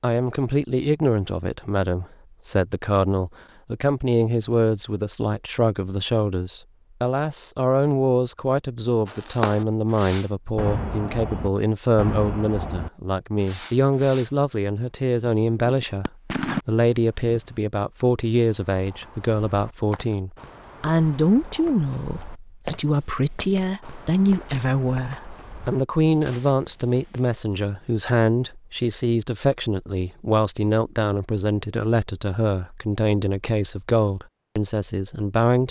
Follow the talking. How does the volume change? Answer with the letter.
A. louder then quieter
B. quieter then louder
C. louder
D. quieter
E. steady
E.